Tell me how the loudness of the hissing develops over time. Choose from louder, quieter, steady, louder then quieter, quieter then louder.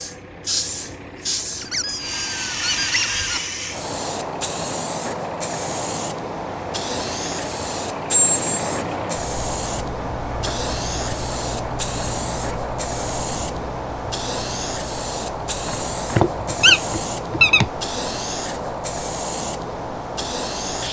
steady.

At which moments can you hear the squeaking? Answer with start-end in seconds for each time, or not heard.
1.6-3.4, 8.1-8.8, 15.7-17.7.